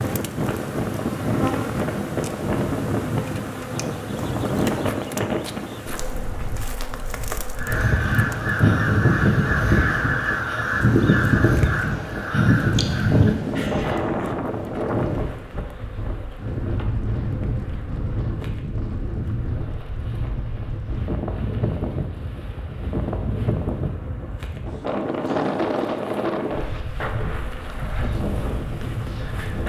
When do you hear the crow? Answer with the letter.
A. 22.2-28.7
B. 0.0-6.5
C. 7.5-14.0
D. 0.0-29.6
C.